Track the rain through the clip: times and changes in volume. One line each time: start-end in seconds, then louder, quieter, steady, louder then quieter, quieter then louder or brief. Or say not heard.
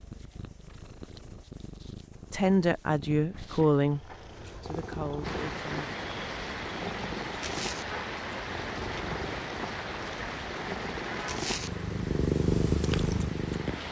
5.2-13.8 quieter.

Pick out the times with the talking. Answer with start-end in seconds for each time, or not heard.
2.3-5.9.